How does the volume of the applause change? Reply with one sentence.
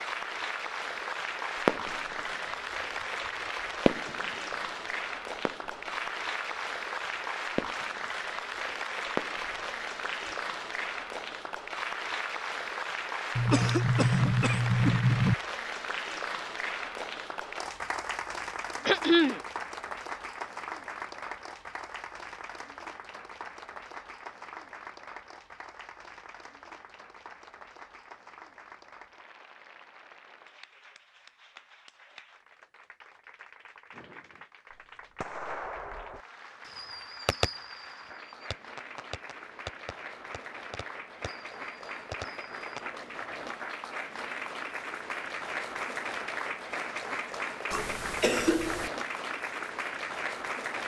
The loudness of the applause goes down, then up.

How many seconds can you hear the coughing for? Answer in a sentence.
The coughing can be heard for 4 seconds in total.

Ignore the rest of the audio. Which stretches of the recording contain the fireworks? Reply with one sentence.
You can hear the fireworks from 1.6 to 2.3 s, from 3.9 to 4.7 s, from 5.3 to 6.1 s, from 7.5 to 8.4 s, from 9.2 to 10.3 s and from 33.9 to 42.8 s.